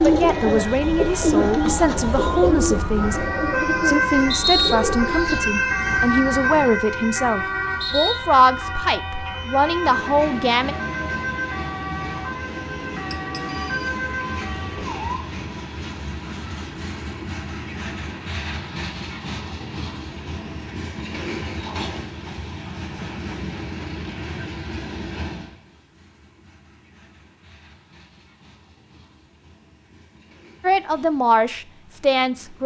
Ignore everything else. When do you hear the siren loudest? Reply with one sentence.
The volume of the siren peaks at 4 seconds.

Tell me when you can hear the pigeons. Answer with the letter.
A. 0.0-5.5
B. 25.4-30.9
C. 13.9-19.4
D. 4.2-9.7
A.